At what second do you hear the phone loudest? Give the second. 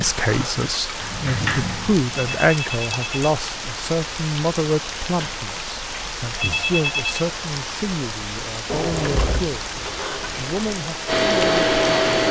7 s.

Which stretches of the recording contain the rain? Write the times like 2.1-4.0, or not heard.
0.0-12.2.